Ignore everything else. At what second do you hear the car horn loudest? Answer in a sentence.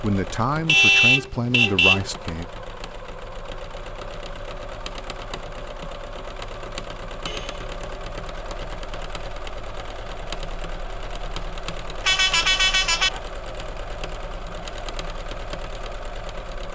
The volume of the car horn peaks at 1 second.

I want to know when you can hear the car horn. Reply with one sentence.
You can hear the car horn from 0.7 to 2.0 s, from 7.2 to 7.7 s and from 12.0 to 13.2 s.